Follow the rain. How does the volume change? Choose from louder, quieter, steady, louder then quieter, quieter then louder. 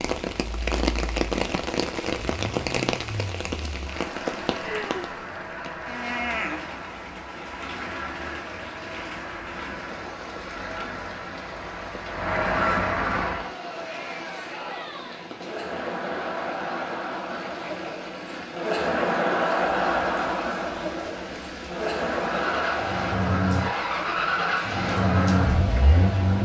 quieter.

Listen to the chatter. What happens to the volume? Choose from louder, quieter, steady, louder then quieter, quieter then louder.
louder then quieter.